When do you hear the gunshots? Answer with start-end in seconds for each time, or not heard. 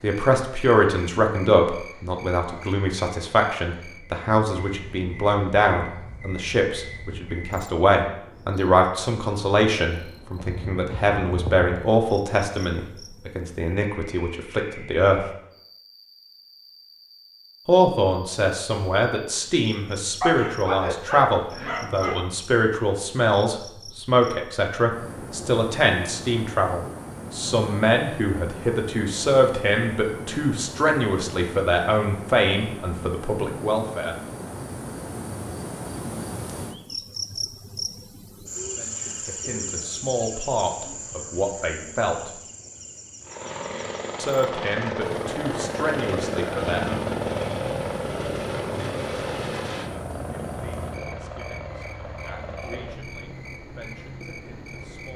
not heard.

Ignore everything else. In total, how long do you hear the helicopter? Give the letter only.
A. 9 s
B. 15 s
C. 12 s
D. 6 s
C.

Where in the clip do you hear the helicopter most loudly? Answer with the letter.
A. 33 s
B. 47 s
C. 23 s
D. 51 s
B.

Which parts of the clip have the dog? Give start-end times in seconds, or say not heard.
20.2-22.2.